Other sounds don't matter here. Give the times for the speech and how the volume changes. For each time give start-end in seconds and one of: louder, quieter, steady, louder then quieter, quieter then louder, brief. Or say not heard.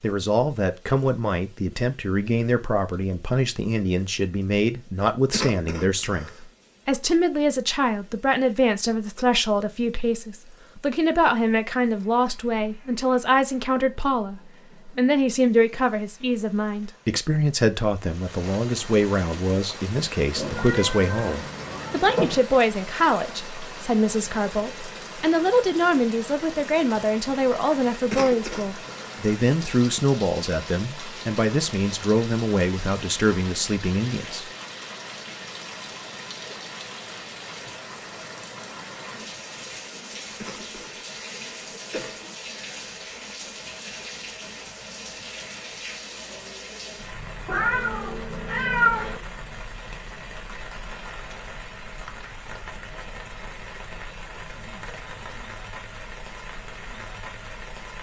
0.0-34.5 steady.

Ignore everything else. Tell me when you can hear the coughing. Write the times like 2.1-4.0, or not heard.
5.3-6.4, 28.1-29.2, 40.4-42.3.